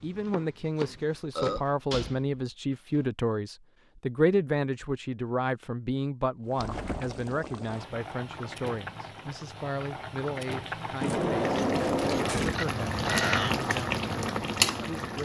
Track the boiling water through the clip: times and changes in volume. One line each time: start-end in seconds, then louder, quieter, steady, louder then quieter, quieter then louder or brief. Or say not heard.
6.5-15.2 louder.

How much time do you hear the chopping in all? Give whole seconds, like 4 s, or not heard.
2 s.